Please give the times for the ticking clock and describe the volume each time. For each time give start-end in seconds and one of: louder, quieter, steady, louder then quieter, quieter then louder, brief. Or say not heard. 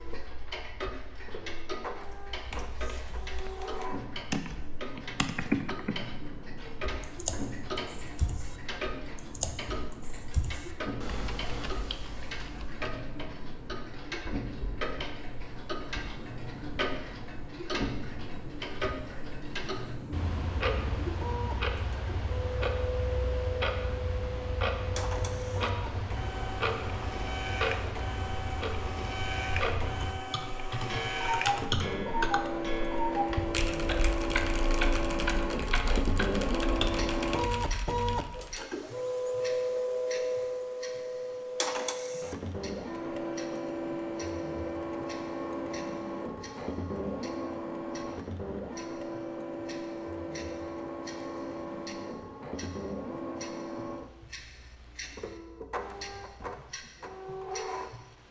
0.0-58.2 louder then quieter.